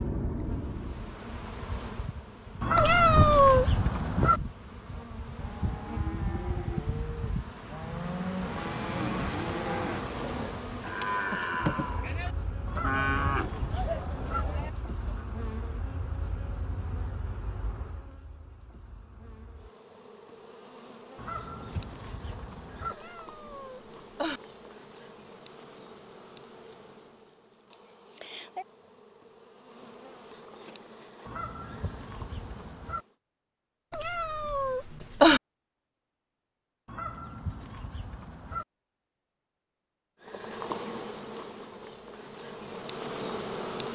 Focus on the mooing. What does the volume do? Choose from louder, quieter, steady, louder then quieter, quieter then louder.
louder.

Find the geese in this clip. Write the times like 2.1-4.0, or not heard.
2.6-4.4, 12.7-14.4, 21.1-22.9, 31.2-33.0, 36.9-38.6.